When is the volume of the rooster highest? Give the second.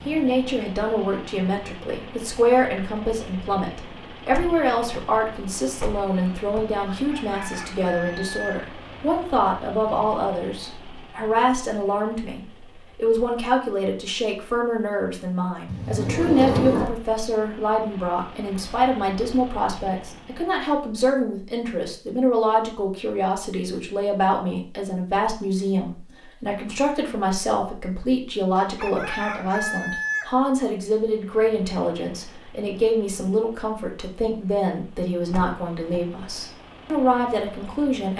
30 s.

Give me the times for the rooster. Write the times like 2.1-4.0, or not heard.
6.8-8.7, 28.6-30.4.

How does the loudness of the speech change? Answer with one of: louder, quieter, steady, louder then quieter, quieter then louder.
steady.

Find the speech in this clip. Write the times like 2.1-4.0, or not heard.
0.1-38.1.